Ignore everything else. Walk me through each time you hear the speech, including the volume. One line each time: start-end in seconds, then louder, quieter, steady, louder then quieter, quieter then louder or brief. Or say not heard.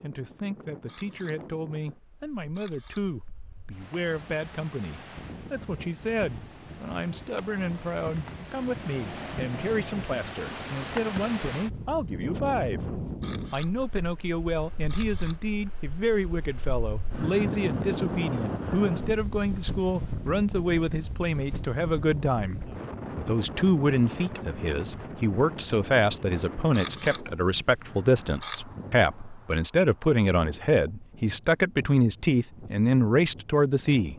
0.0-34.1 louder.